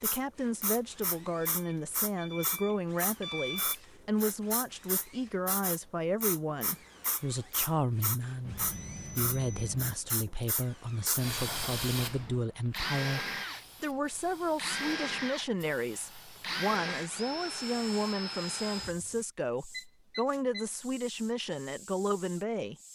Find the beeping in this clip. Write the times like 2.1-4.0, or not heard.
1.4-3.8, 8.4-9.9, 19.7-20.6.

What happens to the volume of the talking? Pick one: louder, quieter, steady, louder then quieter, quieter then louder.
steady.